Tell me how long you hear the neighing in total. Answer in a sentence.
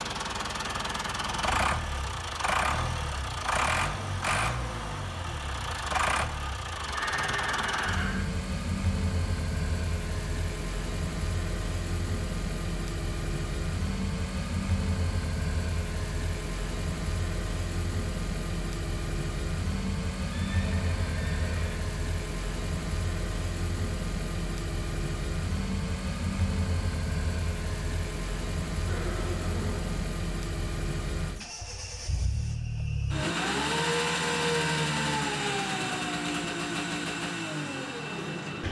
The neighing can be heard for 4 seconds in total.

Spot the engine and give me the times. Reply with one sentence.
The engine can be heard from 0.0 to 38.6 s.